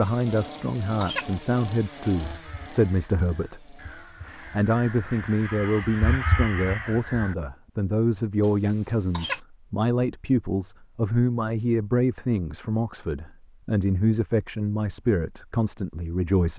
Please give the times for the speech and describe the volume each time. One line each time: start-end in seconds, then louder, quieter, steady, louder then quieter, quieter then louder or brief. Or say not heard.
0.0-16.5 steady.